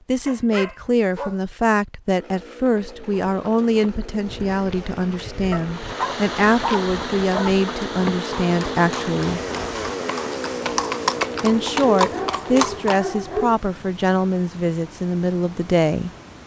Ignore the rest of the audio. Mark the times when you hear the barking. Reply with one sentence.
You can hear the barking from 0.2 to 1.4 s, from 5.5 to 7.5 s and from 11.9 to 13.6 s.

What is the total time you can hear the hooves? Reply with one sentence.
You can hear the hooves for 10 seconds altogether.